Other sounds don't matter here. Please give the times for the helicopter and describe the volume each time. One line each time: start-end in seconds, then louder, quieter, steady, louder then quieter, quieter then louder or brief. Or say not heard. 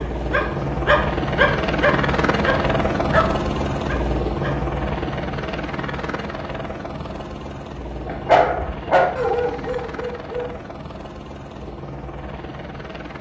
0.0-13.1 quieter.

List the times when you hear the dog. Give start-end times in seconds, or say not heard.
0.0-4.7, 8.1-10.7.